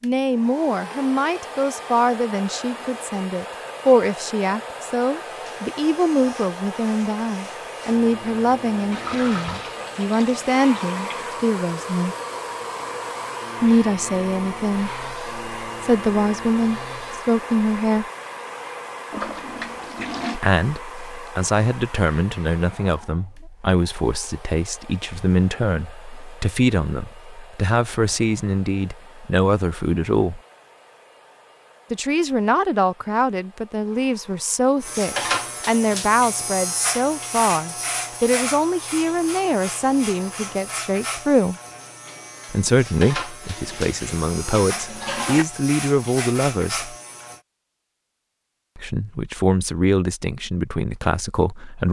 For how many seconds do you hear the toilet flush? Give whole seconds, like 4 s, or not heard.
6 s.